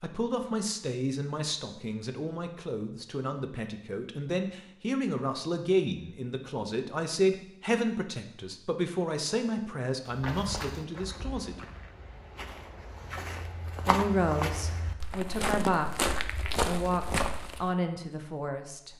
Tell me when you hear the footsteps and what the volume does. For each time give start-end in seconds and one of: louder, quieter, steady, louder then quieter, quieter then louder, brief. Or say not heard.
10.1-17.8 louder.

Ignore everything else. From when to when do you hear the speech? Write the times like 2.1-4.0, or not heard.
0.0-11.6, 13.8-18.9.